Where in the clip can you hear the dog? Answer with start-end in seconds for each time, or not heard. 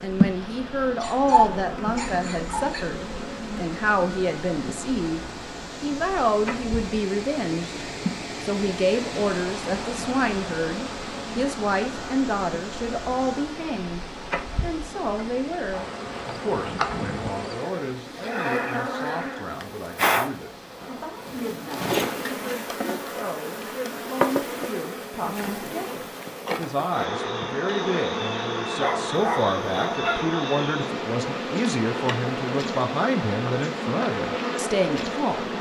1.0-2.9, 28.8-30.3.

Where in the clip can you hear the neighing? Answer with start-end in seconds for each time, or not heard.
not heard.